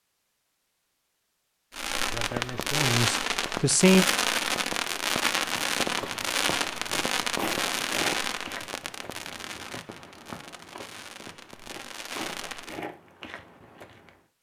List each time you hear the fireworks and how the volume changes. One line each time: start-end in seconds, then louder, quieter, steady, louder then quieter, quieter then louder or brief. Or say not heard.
1.7-12.8 quieter.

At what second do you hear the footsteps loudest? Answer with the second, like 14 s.
8 s.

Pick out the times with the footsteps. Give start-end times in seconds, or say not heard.
5.5-14.2.